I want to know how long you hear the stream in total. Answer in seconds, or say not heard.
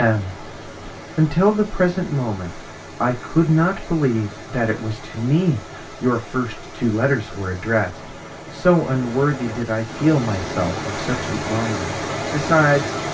13 s.